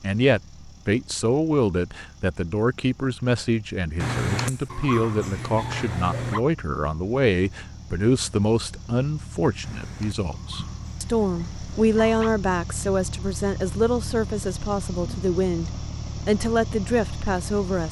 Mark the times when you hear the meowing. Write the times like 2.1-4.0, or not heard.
not heard.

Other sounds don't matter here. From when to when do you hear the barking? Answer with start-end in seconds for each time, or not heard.
4.0-6.4, 9.6-12.3.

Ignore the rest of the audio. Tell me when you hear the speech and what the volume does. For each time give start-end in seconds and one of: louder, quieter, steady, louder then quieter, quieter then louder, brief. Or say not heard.
0.0-17.8 steady.